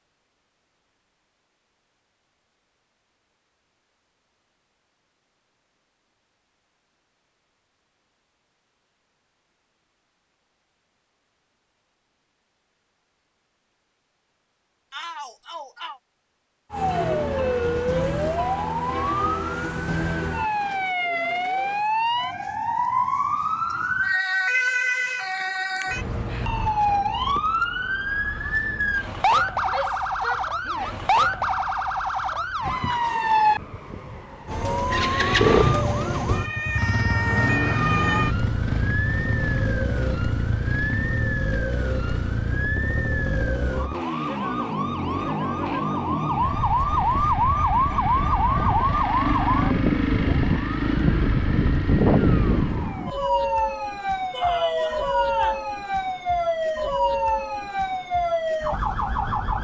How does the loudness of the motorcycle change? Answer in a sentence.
The loudness of the motorcycle goes down, then up.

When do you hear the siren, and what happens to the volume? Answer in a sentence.
The siren can be heard from 16.7 to 59.5 s, at a steady volume.